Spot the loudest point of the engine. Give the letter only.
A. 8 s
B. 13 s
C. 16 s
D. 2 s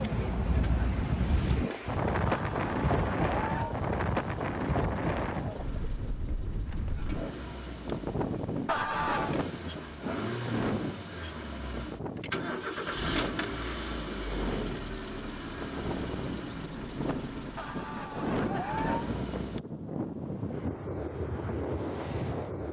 B.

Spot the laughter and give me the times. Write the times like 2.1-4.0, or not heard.
2.2-3.8, 8.7-9.3, 17.6-19.1.